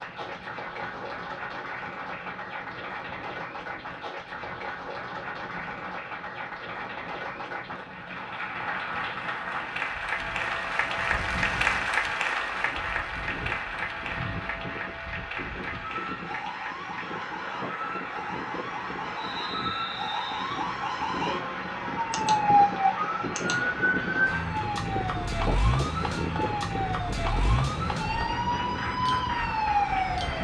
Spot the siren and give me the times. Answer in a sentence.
The siren can be heard from 9.9 to 30.3 s.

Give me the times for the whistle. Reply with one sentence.
You can hear the whistle from 19.1 to 20.6 s.